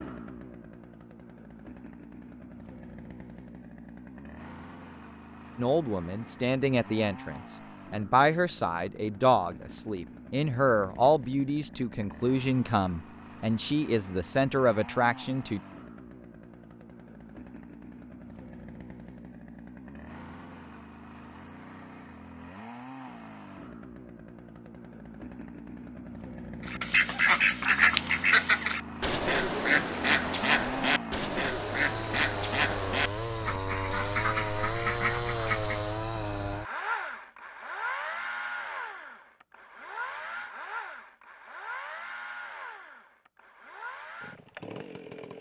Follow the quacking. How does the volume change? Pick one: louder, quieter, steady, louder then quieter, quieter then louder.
quieter.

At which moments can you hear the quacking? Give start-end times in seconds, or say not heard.
26.6-35.9.